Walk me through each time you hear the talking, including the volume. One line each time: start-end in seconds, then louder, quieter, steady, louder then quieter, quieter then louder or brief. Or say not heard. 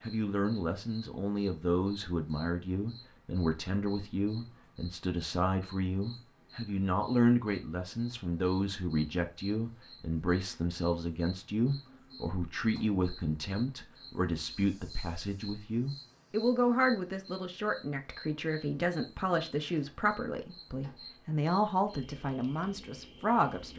0.0-23.7 steady.